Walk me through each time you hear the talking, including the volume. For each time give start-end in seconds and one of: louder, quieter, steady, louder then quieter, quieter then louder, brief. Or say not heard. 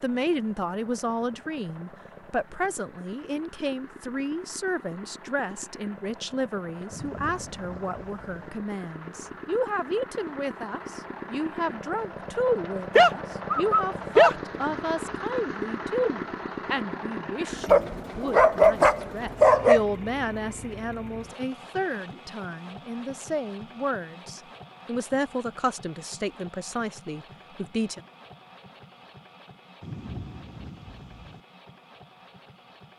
0.0-28.0 steady.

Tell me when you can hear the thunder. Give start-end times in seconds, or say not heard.
6.9-8.5, 29.8-31.4.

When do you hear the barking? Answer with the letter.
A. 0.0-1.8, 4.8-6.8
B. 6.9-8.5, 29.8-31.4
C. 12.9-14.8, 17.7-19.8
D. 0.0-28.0
C.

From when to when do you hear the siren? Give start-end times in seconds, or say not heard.
not heard.